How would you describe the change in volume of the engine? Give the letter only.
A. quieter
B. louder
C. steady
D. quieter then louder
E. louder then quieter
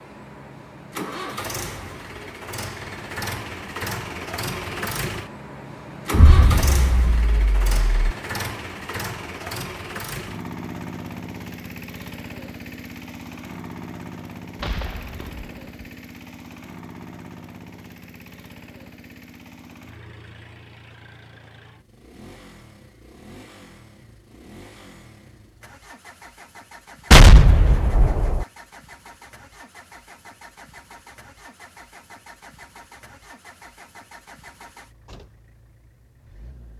A.